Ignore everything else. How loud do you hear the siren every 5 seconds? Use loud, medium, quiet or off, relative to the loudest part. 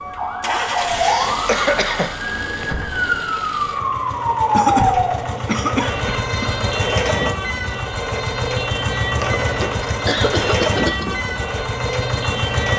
loud, medium, medium.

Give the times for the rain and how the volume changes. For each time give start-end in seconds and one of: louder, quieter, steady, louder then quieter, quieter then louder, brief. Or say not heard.
not heard.